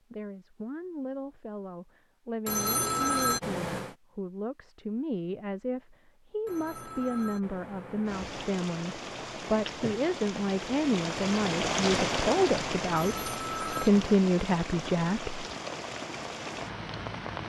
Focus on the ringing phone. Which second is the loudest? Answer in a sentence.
The volume of the ringing phone peaks at 3 seconds.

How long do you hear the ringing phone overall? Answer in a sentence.
The ringing phone can be heard for 5 seconds in total.